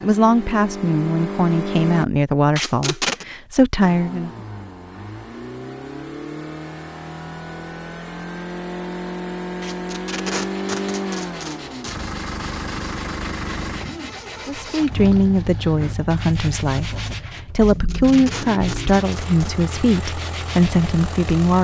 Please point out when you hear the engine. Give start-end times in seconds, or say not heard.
0.0-2.0, 3.8-21.5.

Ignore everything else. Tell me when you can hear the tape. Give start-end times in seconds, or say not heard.
2.5-3.2, 9.6-12.0, 17.6-19.6.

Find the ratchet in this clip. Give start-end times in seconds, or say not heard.
not heard.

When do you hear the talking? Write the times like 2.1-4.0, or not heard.
0.0-4.3, 14.4-21.5.